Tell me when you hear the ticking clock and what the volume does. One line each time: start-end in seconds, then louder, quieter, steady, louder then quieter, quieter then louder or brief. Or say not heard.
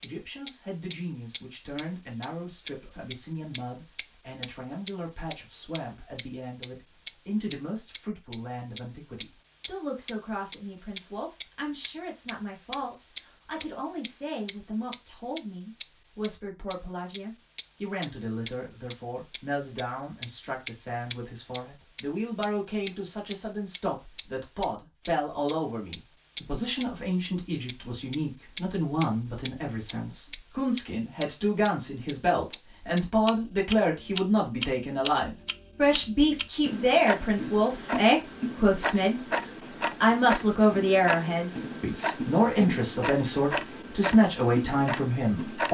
0.0-45.6 quieter.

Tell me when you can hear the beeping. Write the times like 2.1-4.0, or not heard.
not heard.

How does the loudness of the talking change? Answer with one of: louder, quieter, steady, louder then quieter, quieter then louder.
louder.